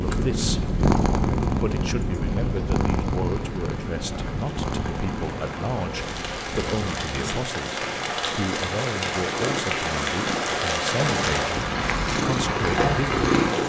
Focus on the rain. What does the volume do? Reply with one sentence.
The loudness of the rain goes up.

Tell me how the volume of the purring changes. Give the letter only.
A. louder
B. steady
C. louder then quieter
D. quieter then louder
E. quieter
D.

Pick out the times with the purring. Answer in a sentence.
You can hear the purring from 0.0 to 13.6 s.